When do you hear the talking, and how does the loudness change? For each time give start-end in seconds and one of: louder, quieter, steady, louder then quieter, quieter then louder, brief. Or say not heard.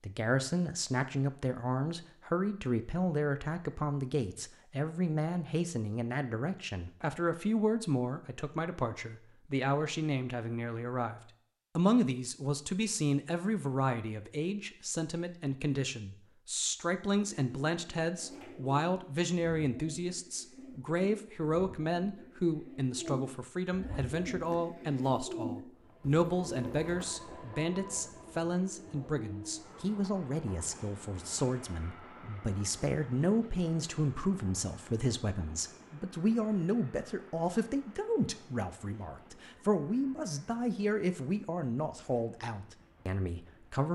0.0-43.8 steady.